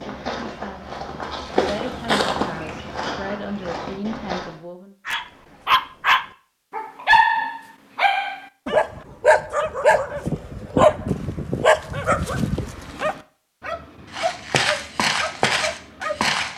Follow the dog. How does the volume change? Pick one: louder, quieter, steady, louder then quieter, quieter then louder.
quieter.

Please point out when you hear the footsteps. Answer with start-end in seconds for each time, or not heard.
0.0-4.5, 14.1-16.5.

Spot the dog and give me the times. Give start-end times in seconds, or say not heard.
5.0-16.5.